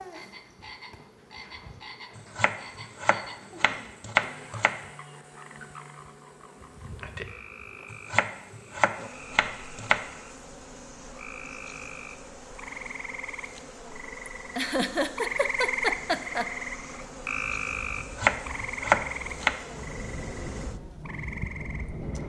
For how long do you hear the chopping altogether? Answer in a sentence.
The chopping can be heard for 6 seconds in total.